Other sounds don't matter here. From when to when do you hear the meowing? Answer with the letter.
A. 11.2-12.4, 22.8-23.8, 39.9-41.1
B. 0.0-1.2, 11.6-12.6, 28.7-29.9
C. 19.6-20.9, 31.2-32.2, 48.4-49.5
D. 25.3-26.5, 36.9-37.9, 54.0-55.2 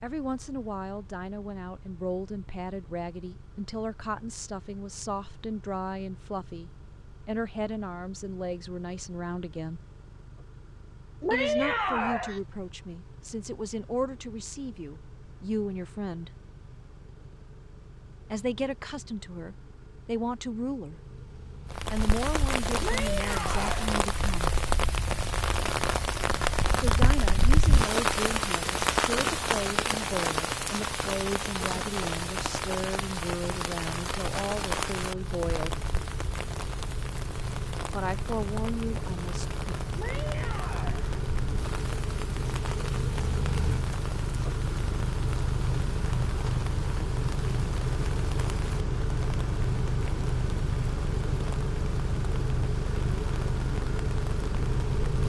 A.